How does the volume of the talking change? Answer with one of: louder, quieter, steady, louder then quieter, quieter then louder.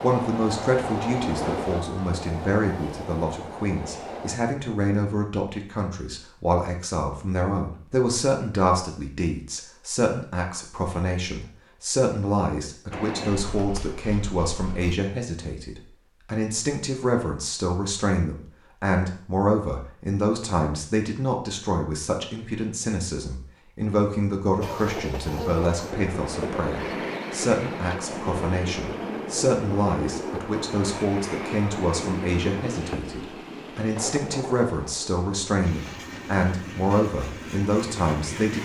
steady.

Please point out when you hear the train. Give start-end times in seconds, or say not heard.
0.0-4.4, 12.9-14.9, 24.6-38.6.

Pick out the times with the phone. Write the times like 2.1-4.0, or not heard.
not heard.